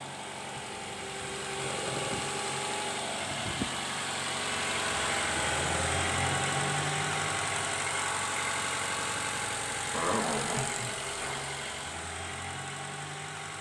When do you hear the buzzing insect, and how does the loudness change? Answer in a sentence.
The buzzing insect can't be heard in this clip.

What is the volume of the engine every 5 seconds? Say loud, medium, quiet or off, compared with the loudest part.
loud, loud, medium.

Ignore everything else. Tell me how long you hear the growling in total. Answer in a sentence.
You can hear the growling for 4 seconds altogether.